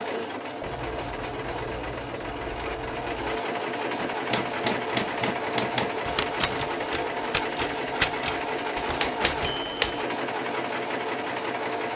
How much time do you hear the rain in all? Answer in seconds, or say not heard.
not heard.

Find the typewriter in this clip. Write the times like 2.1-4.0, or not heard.
4.0-10.1.